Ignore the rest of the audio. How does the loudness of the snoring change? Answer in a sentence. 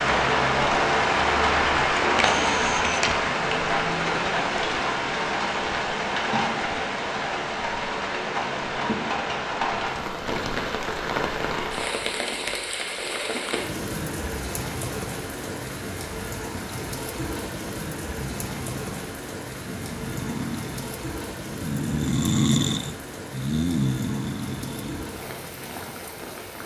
The volume of the snoring goes up, then down.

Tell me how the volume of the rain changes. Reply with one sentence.
The loudness of the rain goes down.